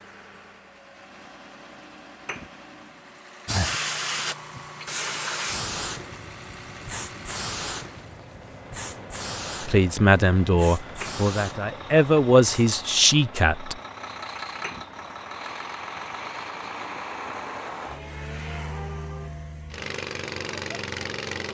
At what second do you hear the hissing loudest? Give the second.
4 s.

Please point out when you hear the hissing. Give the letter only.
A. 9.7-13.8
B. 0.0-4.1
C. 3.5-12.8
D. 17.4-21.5
C.